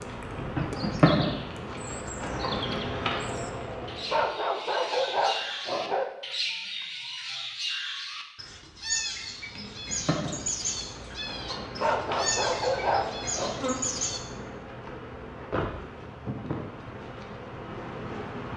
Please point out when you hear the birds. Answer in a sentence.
The birds can be heard from 0.0 to 14.2 s.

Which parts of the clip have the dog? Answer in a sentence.
You can hear the dog from 4.1 to 6.0 s and from 11.8 to 13.6 s.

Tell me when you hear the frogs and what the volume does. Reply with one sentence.
The frogs can't be heard in this clip.